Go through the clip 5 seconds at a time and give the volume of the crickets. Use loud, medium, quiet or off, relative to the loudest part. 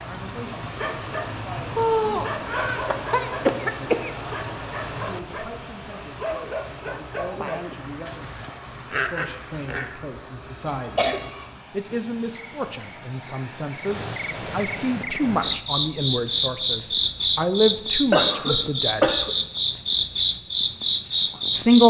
quiet, quiet, medium, loud, loud.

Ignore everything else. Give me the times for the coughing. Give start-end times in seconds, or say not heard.
1.8-4.1, 10.7-11.4, 18.1-19.4.